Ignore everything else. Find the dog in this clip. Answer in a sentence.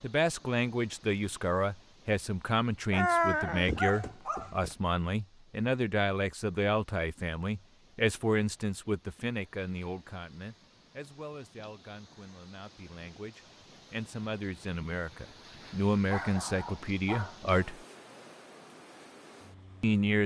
The dog can be heard from 2.9 to 4.8 s and from 16.1 to 17.6 s.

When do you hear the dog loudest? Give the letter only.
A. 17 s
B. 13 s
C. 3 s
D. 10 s
C.